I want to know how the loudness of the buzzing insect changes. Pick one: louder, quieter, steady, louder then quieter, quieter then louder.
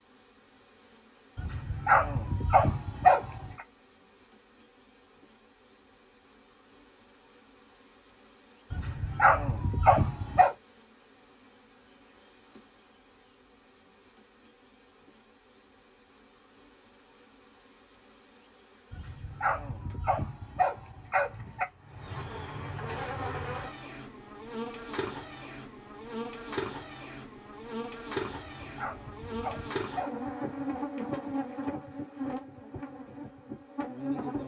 louder.